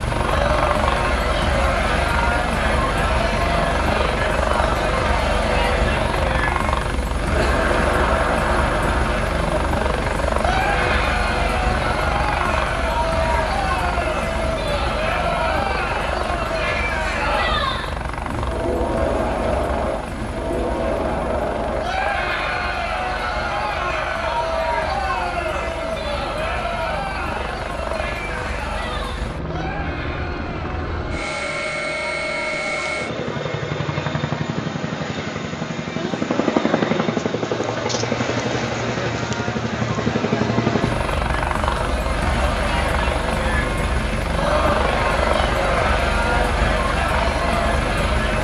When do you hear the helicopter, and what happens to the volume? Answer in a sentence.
You can hear the helicopter from 0.0 to 48.3 s, getting quieter then louder.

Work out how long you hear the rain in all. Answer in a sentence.
The rain can't be heard in this clip.